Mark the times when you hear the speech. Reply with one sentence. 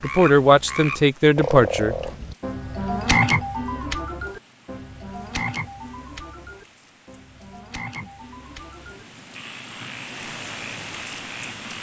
You can hear the speech from 0.0 to 1.9 s.